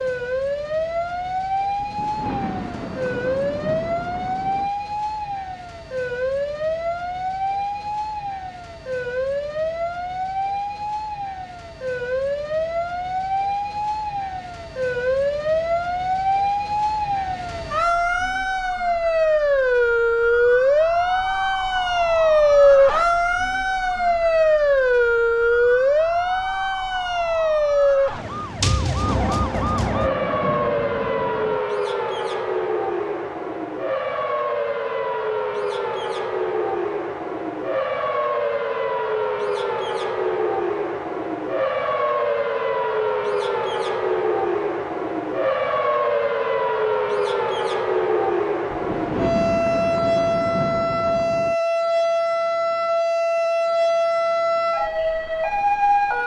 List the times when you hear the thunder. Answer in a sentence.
You can hear the thunder from 1.8 to 4.7 s, from 28.6 to 31.6 s and from 48.7 to 51.5 s.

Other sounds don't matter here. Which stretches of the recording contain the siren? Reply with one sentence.
The siren can be heard from 0.0 to 56.2 s.